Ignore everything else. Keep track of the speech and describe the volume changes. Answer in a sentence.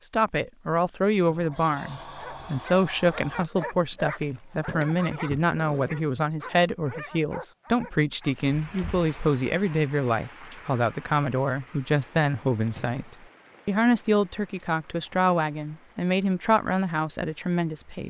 The volume of the speech stays about the same.